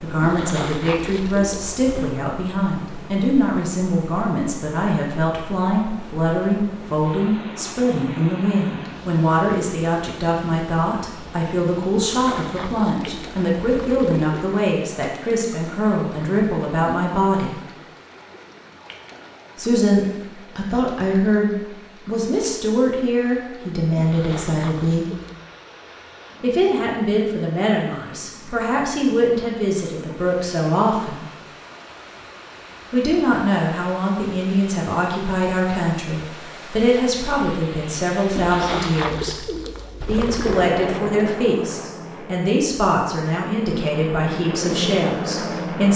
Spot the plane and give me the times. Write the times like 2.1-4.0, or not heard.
40.4-45.9.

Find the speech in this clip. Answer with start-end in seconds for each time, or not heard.
0.0-17.6, 19.6-25.1, 26.4-31.2, 32.9-39.5, 40.0-45.9.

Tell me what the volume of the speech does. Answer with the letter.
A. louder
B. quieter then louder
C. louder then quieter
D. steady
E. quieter
D.